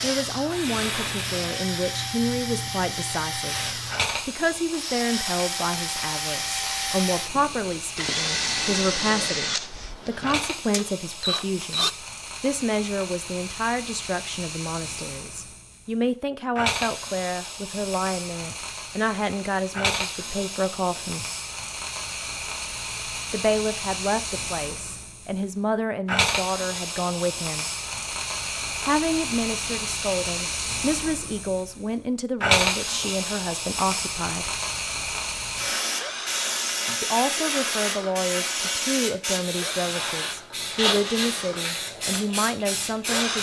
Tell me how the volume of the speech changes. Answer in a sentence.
The loudness of the speech stays about the same.